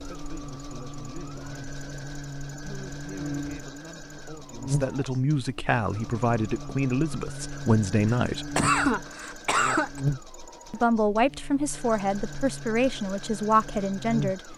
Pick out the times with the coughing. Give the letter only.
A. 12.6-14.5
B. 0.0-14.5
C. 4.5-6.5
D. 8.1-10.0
D.